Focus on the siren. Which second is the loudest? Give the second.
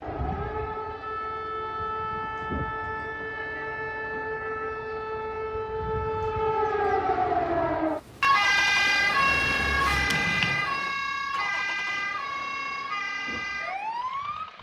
9 s.